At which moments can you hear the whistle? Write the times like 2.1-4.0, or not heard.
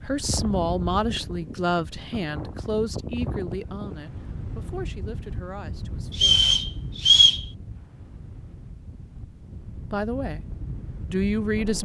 6.1-7.5.